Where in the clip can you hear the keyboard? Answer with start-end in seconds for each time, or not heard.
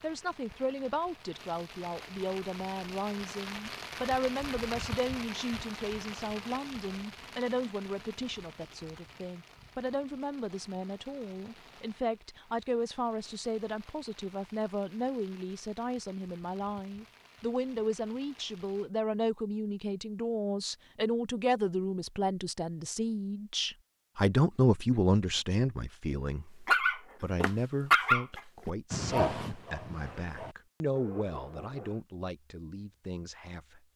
not heard.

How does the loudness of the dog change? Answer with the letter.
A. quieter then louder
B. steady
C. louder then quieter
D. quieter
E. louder
D.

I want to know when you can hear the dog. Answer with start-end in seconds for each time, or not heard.
26.6-32.0.